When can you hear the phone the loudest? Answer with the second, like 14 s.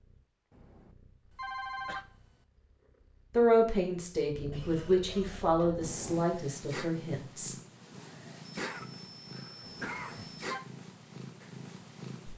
2 s.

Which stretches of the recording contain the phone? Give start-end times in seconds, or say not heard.
0.5-2.1, 5.8-6.3, 9.6-10.7.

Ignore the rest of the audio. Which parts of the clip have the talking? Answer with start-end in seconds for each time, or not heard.
3.4-7.5.